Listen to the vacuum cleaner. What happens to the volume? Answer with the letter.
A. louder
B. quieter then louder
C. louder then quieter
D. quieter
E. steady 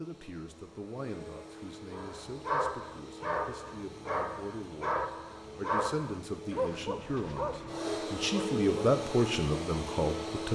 A.